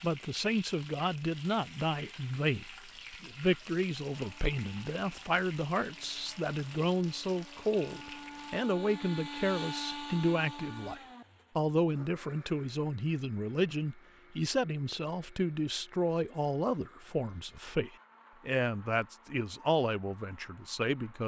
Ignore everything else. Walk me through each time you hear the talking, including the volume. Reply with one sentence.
The talking can be heard from 0.0 to 21.2 s, at a steady volume.